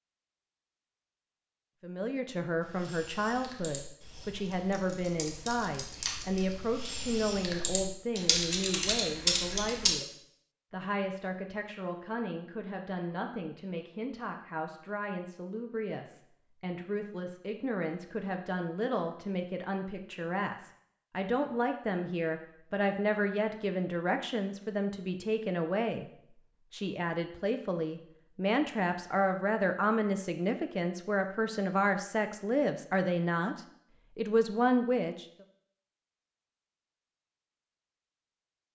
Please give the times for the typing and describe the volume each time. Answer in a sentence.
You can hear the typing from 2.6 to 9.9 s, getting louder.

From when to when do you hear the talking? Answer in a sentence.
The talking can be heard from 1.8 to 26.1 s and from 26.7 to 35.2 s.